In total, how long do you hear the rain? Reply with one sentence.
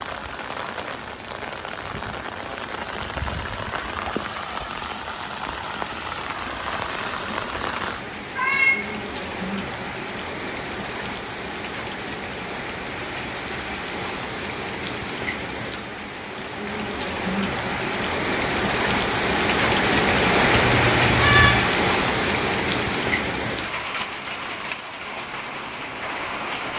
The rain can be heard for 27 seconds in total.